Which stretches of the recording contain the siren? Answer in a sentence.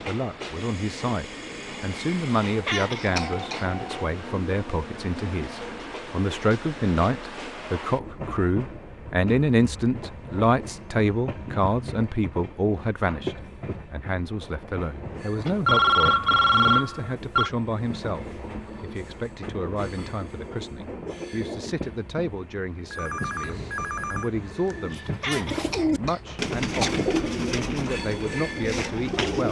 The siren can't be heard in this clip.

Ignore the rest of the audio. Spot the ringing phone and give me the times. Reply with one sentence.
You can hear the ringing phone from 3.1 to 4.0 s, from 15.4 to 17.5 s and from 22.9 to 24.9 s.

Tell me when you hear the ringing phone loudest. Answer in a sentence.
The loudest moment of the ringing phone is at 16 seconds.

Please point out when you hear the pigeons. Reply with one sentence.
The pigeons can be heard from 24.7 to 29.4 s.